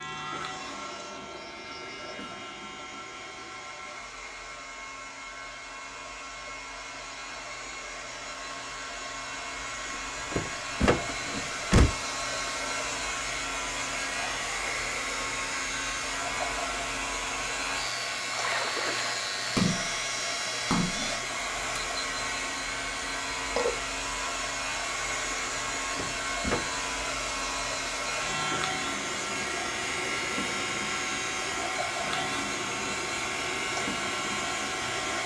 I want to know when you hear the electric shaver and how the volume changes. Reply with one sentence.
The electric shaver can be heard from 0.0 to 35.2 s, getting louder.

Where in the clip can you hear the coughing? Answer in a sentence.
You can't hear the coughing here.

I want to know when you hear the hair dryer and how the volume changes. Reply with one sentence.
The hair dryer can be heard from 0.0 to 35.2 s, getting louder.